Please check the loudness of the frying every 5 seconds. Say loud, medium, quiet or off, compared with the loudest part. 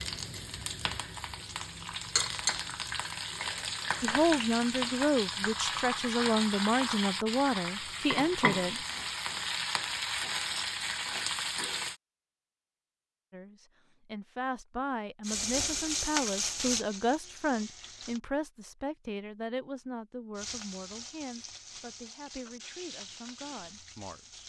loud, loud, loud, loud, quiet.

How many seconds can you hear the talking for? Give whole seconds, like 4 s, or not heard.
16 s.